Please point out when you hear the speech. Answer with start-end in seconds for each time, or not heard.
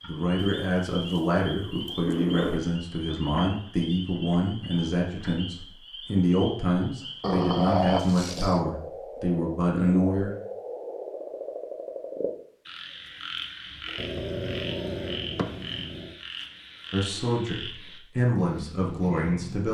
0.0-10.3, 16.9-19.7.